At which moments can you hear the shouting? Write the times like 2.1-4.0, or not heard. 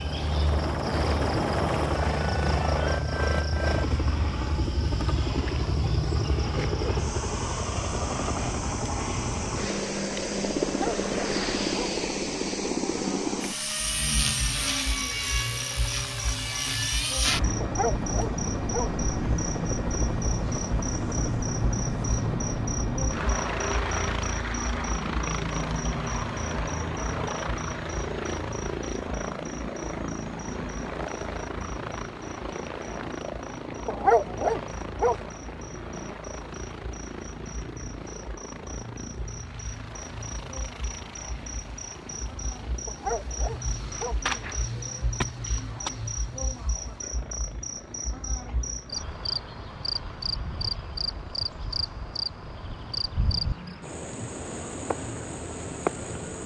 not heard.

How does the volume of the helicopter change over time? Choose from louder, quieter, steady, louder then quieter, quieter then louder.
quieter.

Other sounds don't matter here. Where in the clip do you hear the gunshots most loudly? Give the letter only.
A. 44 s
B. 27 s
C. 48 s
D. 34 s
A.